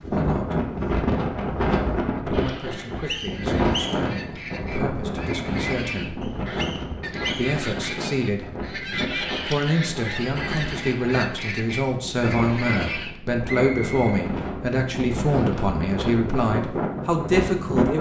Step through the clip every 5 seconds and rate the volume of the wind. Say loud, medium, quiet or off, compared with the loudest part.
loud, medium, medium, loud.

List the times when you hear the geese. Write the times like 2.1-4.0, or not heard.
2.3-13.2.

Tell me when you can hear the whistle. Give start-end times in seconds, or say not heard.
2.7-4.2, 6.2-7.5, 13.5-14.2.